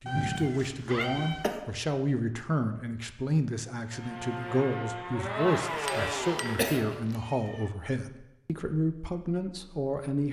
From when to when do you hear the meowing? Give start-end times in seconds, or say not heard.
0.1-1.6, 5.8-7.7.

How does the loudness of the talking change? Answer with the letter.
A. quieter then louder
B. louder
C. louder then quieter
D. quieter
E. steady
E.